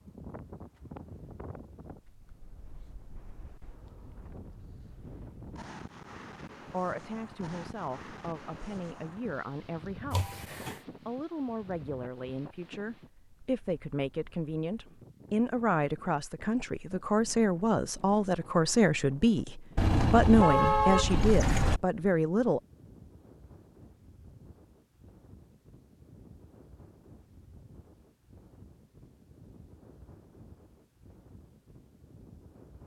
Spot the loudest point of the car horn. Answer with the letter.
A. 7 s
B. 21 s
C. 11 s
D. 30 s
B.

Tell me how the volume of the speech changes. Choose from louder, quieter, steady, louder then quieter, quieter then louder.
louder.